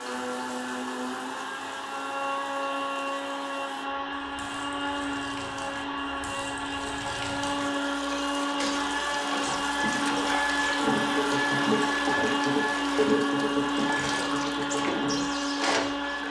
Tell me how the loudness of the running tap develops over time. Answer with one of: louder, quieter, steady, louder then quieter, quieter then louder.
louder.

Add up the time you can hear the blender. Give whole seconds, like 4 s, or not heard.
16 s.